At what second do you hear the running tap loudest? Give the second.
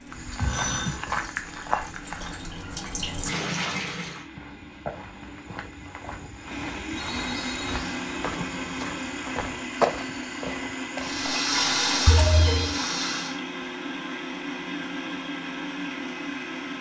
12 s.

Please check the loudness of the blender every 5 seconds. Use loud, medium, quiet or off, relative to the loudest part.
quiet, loud, loud, loud.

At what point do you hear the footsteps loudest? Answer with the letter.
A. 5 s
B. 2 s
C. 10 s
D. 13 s
C.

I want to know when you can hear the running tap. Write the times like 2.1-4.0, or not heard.
0.0-4.2, 11.0-13.3.